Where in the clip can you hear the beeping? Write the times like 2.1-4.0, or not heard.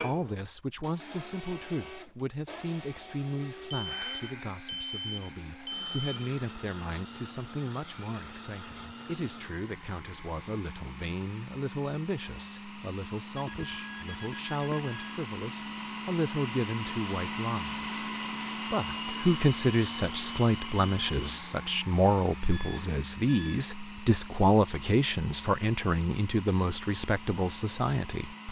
3.7-6.2, 13.3-15.2, 22.5-23.6.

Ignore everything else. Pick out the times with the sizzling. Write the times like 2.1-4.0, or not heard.
not heard.